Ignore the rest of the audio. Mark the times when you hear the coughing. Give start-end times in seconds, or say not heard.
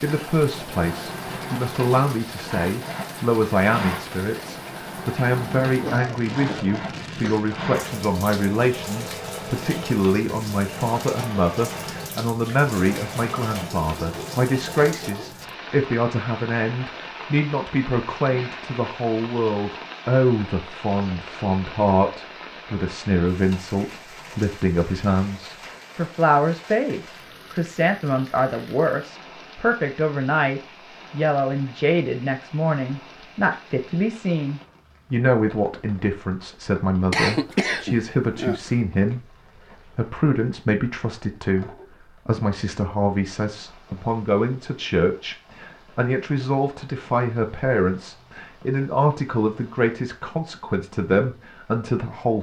5.8-7.4, 37.1-38.8.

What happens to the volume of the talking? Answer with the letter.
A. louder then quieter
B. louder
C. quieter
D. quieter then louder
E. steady
E.